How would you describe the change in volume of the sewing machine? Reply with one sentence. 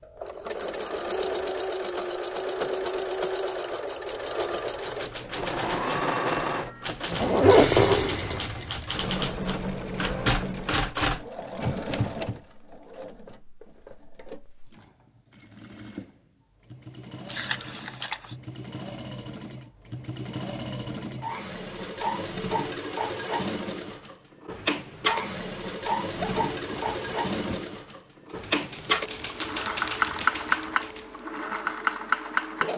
The volume of the sewing machine goes down, then up.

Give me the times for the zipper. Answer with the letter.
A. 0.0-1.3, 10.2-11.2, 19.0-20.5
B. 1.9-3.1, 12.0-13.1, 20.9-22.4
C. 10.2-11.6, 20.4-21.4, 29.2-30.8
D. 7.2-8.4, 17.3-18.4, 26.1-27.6
D.